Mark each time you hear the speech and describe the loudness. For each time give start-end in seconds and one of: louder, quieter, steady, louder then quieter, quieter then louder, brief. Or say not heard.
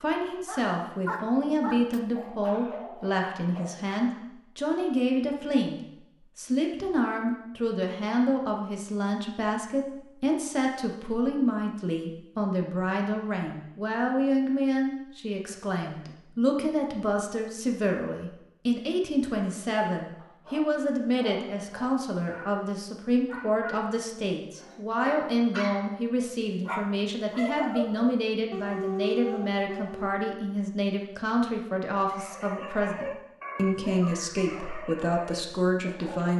0.0-36.3 steady.